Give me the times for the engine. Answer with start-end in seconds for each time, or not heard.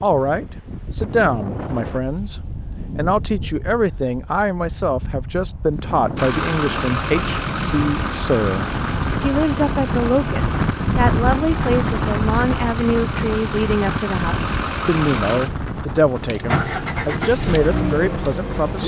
6.2-18.8.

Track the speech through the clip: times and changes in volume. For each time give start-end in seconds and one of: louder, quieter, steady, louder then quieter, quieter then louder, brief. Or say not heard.
0.0-18.8 steady.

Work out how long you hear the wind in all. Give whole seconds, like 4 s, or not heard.
19 s.